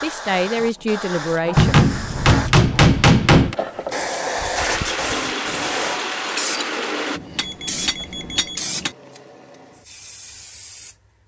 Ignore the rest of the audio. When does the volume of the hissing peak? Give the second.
4 s.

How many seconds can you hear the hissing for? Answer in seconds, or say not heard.
11 s.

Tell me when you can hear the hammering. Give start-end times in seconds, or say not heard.
1.6-3.5, 7.2-8.9.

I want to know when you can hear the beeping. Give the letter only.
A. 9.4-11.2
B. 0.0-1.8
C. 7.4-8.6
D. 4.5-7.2
C.